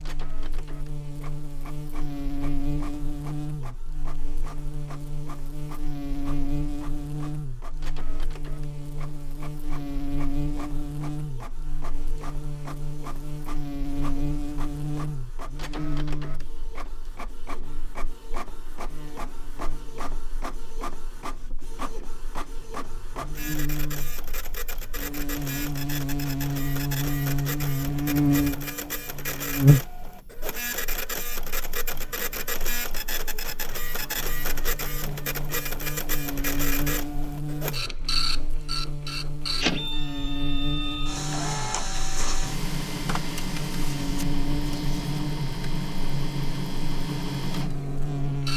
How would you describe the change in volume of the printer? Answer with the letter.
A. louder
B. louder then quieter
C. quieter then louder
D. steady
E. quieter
A.